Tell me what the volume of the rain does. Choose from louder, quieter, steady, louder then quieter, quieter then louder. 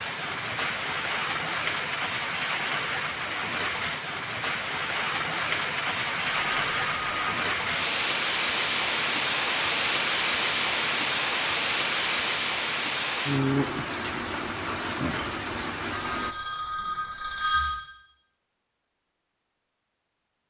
steady.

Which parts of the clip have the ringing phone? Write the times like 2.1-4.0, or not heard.
6.3-7.4, 15.9-17.8.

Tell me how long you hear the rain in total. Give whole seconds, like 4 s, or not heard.
16 s.